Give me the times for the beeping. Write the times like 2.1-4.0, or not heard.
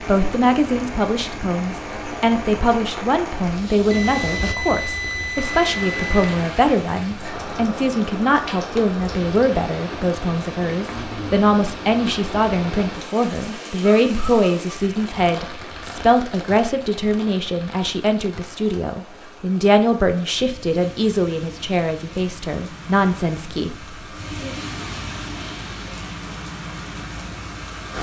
3.9-6.3.